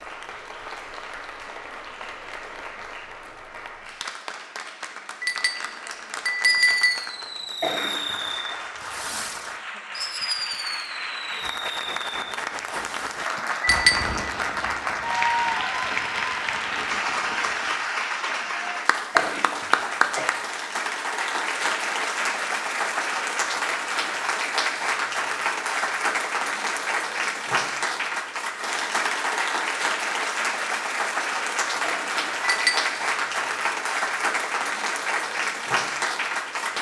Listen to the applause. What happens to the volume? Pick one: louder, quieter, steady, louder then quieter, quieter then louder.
louder.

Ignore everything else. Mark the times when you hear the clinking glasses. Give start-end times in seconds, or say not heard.
5.2-7.0, 13.6-14.2, 32.4-32.9.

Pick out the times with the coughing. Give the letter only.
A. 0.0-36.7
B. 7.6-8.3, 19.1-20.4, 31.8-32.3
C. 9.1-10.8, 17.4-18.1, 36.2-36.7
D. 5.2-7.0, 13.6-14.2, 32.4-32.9
B.